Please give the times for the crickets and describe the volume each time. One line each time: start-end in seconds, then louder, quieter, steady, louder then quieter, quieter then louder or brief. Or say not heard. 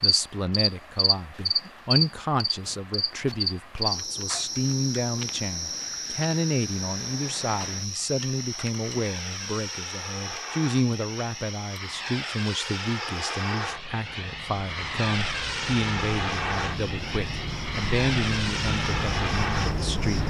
0.0-20.2 quieter then louder.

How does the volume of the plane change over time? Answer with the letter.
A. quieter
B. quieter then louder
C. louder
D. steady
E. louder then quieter
C.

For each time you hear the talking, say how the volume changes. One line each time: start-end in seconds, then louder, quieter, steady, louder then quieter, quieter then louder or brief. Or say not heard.
0.0-20.2 steady.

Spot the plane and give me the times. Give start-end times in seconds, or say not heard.
0.0-20.2.